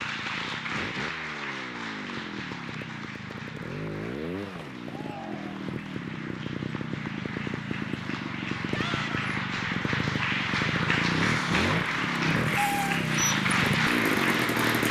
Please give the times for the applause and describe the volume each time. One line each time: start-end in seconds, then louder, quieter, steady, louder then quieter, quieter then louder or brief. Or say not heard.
0.0-14.8 quieter then louder.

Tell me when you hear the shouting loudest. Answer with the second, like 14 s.
9 s.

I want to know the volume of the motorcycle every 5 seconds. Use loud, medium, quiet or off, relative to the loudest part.
medium, medium, loud.